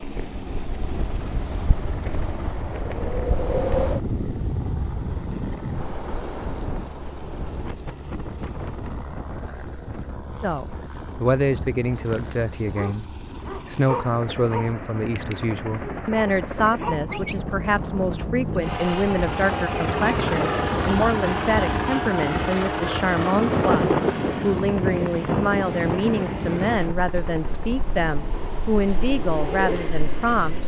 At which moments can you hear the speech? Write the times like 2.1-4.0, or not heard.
10.4-30.6.